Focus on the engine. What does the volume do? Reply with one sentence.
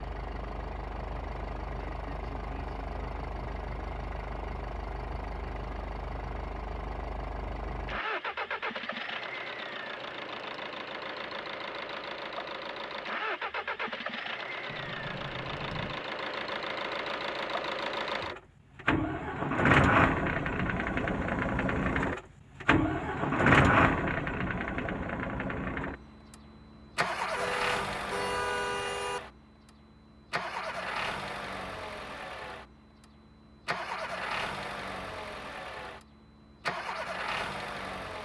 The volume of the engine goes up, then down.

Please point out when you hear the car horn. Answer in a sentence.
The car horn can be heard from 27.4 to 29.2 s.